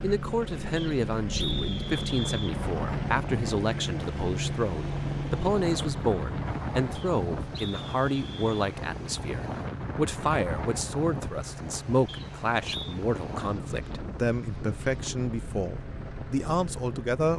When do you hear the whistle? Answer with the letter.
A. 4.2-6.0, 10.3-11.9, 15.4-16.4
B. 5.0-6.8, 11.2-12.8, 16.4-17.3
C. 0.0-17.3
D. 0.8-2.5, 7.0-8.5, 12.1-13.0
D.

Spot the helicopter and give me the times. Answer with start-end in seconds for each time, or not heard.
0.0-17.3.